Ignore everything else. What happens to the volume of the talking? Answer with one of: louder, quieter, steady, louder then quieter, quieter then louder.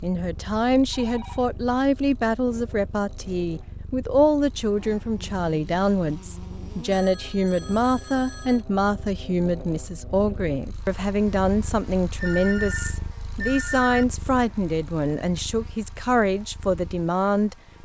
steady.